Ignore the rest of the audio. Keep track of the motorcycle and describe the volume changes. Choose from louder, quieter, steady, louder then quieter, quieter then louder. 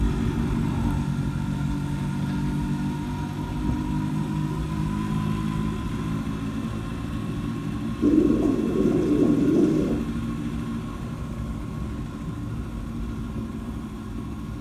quieter.